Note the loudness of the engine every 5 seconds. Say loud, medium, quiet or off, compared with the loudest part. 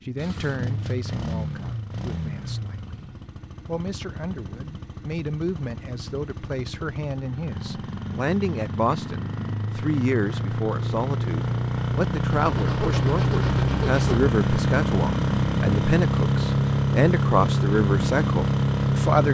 quiet, quiet, loud, loud.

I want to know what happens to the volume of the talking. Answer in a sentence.
The loudness of the talking goes up.